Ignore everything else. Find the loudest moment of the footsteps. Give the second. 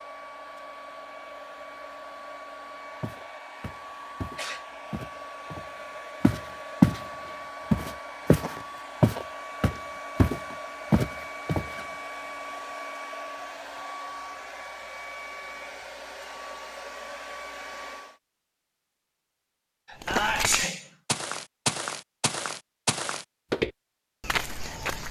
7 s.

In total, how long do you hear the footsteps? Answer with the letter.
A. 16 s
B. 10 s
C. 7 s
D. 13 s
D.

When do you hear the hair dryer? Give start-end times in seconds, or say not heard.
0.0-18.1.